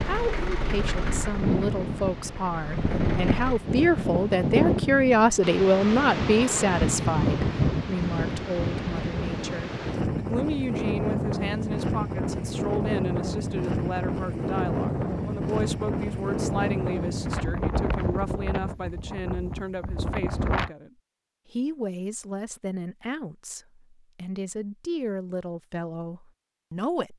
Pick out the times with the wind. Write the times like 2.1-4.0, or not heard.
0.0-20.7.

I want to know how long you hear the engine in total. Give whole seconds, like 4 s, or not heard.
4 s.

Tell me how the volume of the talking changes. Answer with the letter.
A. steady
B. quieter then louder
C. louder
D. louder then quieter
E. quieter
E.